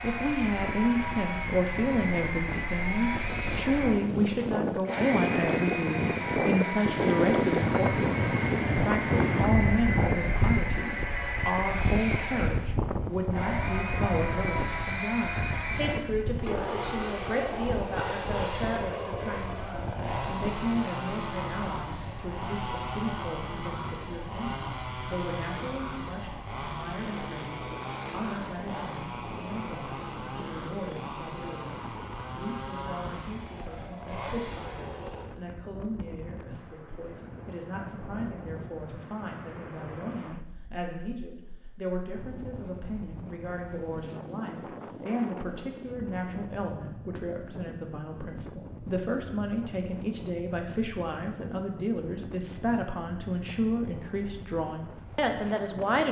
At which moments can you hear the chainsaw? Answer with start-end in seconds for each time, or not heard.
0.0-35.2.